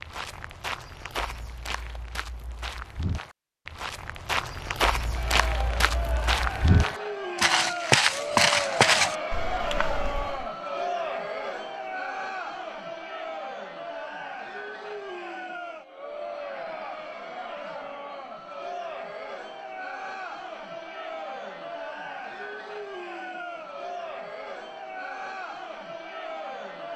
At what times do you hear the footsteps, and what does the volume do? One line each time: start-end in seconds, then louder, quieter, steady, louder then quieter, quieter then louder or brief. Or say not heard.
0.0-10.4 louder.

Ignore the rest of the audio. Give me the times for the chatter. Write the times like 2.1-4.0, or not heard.
5.0-26.9.